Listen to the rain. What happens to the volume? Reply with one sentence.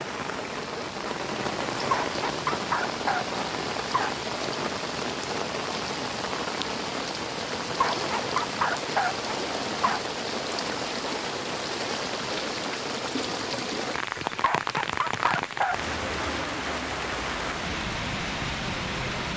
The loudness of the rain stays about the same.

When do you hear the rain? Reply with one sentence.
You can hear the rain from 0.0 to 19.3 s.